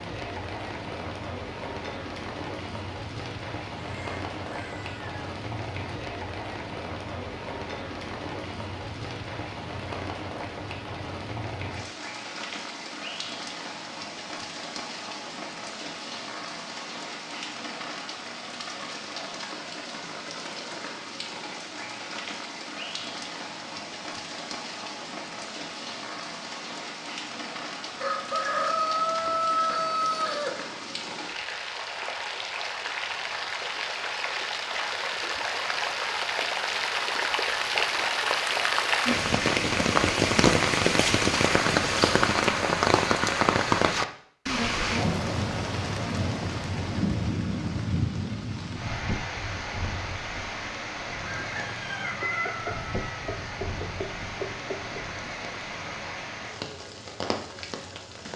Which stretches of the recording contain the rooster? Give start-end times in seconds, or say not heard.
3.8-5.0, 27.9-30.8, 51.2-55.0.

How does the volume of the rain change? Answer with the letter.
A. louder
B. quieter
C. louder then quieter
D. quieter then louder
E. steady
C.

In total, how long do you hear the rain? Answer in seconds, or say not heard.
58 s.